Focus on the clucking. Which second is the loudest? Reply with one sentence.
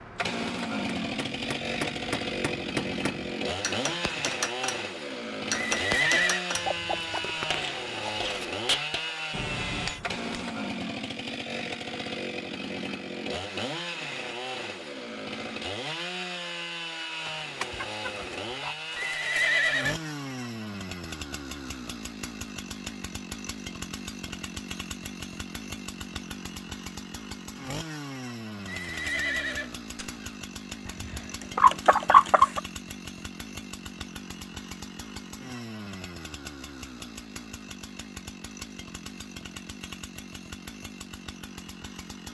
The volume of the clucking peaks at 32 seconds.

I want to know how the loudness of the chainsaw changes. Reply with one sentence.
The loudness of the chainsaw goes down.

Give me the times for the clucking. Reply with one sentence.
You can hear the clucking from 6.5 to 8.4 s, from 17.2 to 19.1 s and from 30.9 to 32.6 s.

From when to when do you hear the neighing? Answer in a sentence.
You can hear the neighing from 5.5 to 6.5 s, from 18.9 to 19.9 s and from 28.6 to 30.2 s.